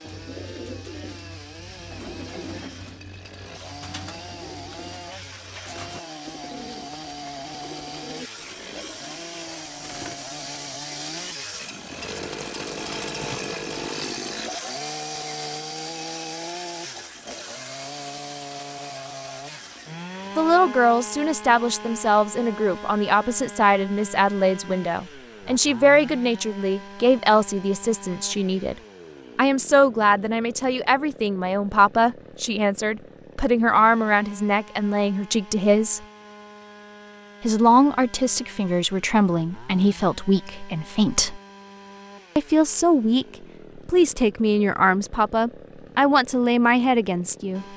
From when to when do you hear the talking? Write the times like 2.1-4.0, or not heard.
20.4-28.8, 29.4-36.0, 37.4-41.4, 42.4-47.6.